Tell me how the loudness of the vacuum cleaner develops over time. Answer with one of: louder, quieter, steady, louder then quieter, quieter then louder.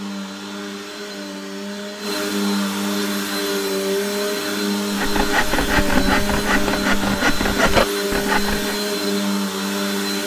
louder.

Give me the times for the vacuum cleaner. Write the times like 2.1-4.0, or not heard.
0.0-10.2.